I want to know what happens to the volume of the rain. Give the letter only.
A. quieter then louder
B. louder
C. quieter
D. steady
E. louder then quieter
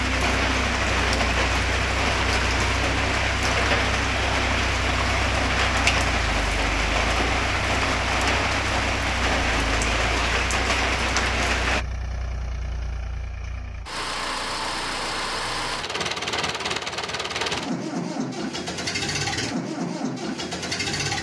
D.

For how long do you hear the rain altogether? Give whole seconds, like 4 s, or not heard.
12 s.